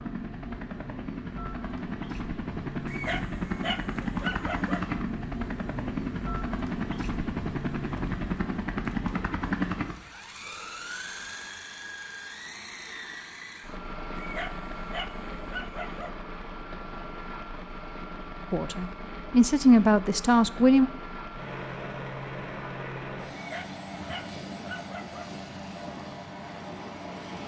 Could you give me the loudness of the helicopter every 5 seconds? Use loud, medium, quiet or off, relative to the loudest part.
loud, loud, medium, medium, medium, medium.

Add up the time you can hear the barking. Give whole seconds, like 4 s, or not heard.
6 s.